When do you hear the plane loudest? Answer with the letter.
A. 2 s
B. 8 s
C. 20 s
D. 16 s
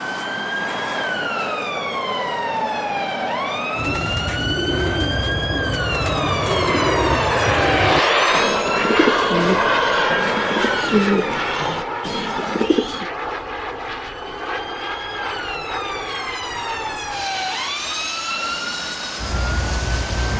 B.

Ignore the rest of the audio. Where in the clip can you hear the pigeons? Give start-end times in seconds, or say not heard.
3.8-13.1.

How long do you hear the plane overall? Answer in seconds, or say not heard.
20 s.